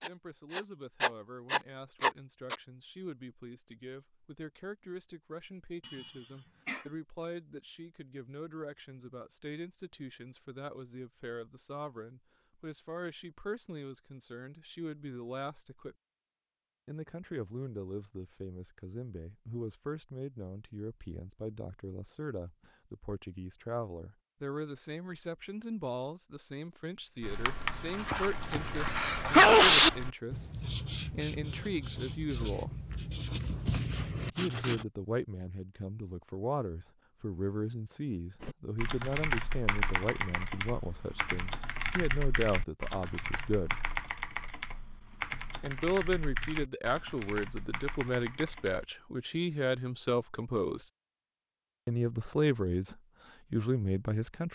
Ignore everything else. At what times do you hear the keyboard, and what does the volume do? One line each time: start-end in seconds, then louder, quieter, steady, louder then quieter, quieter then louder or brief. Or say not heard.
38.4-48.9 quieter.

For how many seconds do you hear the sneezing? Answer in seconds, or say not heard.
3 s.